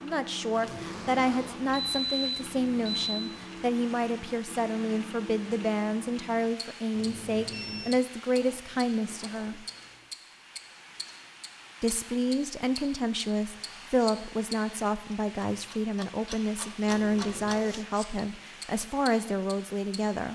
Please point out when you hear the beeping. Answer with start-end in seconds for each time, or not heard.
0.7-3.4, 6.9-8.0, 16.9-17.6.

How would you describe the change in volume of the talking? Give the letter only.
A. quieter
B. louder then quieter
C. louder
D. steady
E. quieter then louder
D.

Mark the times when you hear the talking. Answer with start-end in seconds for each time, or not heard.
0.0-9.6, 11.8-20.3.